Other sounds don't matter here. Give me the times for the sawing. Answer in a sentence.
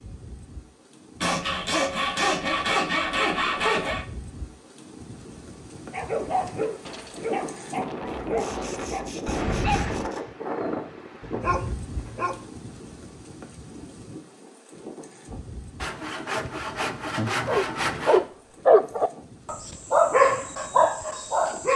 The sawing can be heard from 1.2 to 4.0 s, from 8.3 to 10.2 s and from 15.8 to 18.3 s.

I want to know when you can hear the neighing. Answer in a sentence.
You can hear the neighing from 9.2 to 10.1 s.